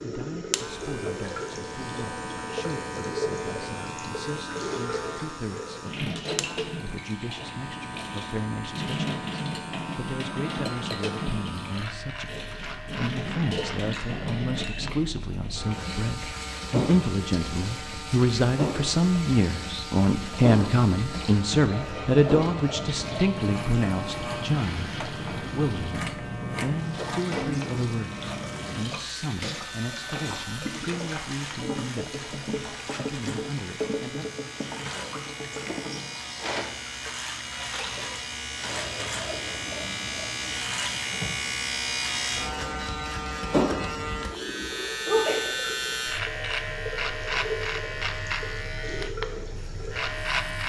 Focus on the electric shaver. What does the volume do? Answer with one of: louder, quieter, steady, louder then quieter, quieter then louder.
louder.